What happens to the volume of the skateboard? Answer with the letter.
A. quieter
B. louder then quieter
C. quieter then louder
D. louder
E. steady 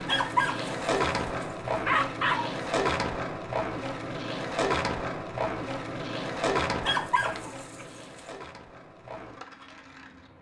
A.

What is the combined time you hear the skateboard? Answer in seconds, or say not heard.
10 s.